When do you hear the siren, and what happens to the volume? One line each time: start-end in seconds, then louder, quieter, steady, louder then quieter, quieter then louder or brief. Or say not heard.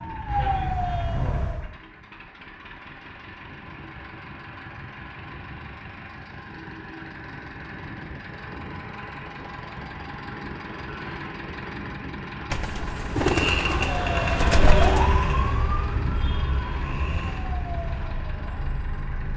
0.0-1.7 brief
13.2-19.3 quieter.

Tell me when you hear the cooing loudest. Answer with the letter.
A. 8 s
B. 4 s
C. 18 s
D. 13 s
D.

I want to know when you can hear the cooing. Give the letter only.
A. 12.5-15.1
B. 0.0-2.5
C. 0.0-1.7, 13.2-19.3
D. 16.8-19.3
A.